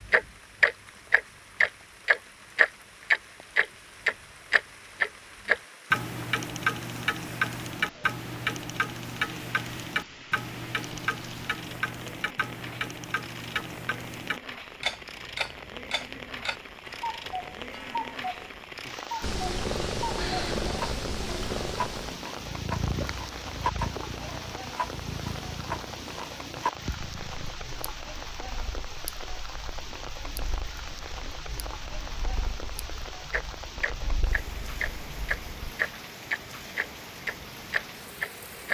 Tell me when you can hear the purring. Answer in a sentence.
You can hear the purring from 19.2 to 35.5 s.